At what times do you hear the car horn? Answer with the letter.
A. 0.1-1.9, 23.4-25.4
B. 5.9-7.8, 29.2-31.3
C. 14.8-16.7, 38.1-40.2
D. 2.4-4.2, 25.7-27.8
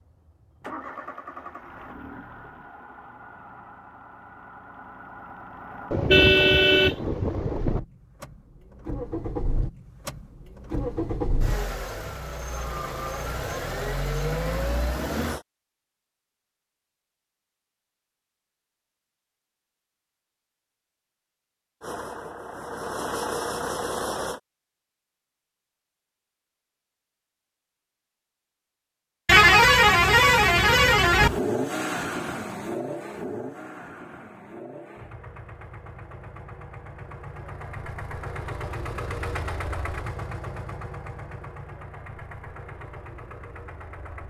B.